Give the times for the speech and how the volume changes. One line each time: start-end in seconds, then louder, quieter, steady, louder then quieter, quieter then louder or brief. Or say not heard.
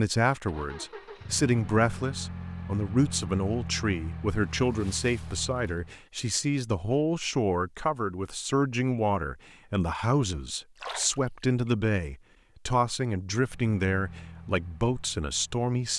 0.0-15.9 steady.